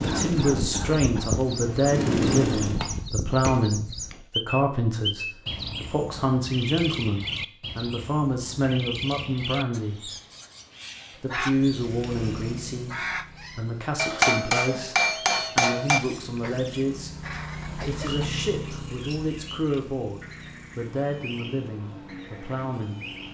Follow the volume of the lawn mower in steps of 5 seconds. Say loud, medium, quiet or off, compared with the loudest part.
loud, off, medium, medium, quiet.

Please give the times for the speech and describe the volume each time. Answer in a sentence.
You can hear the speech from 0.0 to 10.1 s, at a steady volume; and from 11.2 to 23.1 s, at a steady volume.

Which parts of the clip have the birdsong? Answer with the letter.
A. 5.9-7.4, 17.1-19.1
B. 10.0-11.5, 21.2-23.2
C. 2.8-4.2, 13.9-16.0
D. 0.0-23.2
D.